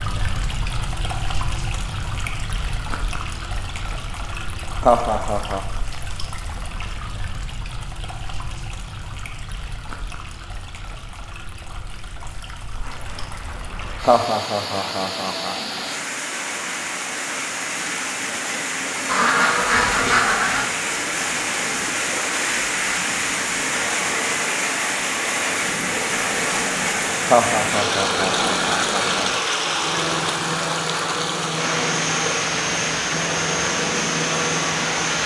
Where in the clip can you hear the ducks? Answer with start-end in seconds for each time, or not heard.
19.1-20.6.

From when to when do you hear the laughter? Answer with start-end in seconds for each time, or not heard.
4.8-5.6, 14.0-15.6, 27.2-29.3.